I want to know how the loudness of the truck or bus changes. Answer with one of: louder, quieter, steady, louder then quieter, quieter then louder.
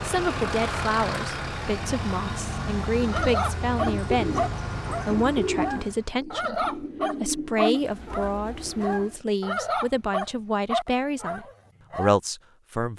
quieter.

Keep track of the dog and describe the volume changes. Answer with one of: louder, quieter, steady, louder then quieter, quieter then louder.
steady.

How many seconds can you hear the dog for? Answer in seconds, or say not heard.
9 s.